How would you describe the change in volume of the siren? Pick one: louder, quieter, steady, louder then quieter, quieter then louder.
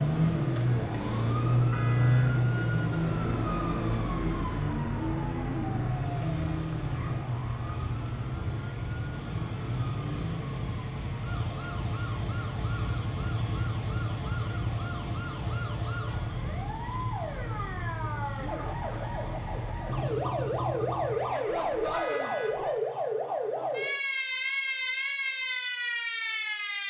quieter then louder.